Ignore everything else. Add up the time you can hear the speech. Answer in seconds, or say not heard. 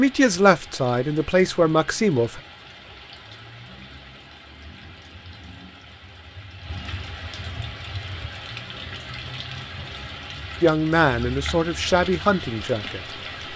5 s.